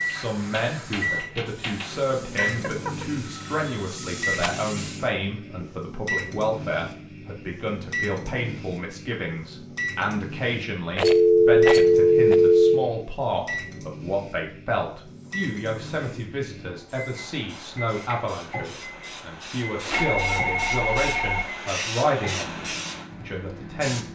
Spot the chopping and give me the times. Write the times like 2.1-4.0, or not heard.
not heard.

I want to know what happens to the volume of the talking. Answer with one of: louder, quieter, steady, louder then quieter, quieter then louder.
steady.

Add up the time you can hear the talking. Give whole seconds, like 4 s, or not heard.
24 s.